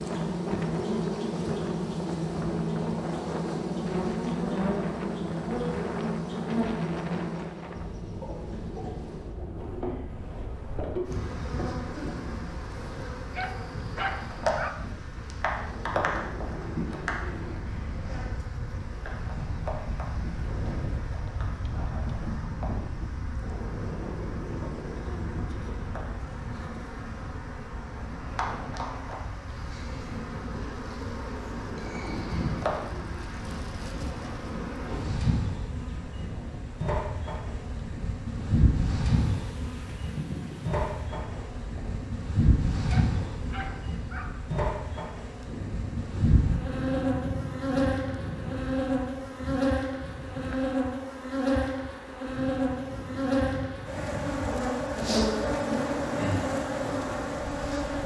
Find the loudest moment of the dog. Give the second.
14 s.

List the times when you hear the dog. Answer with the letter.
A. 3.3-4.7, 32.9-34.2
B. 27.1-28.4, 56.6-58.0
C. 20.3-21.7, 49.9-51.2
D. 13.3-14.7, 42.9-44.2
D.